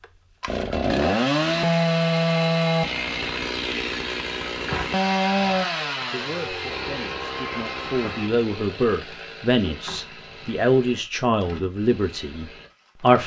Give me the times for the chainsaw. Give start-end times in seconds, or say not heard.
0.0-13.2.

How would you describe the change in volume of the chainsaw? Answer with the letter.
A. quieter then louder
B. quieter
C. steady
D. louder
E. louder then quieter
B.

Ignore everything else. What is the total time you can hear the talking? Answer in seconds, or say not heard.
7 s.